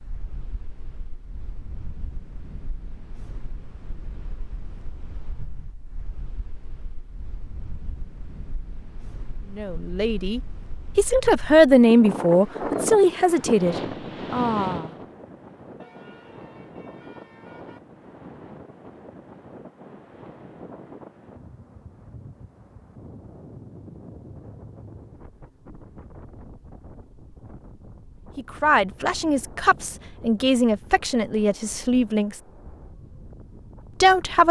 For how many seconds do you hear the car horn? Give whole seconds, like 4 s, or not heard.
2 s.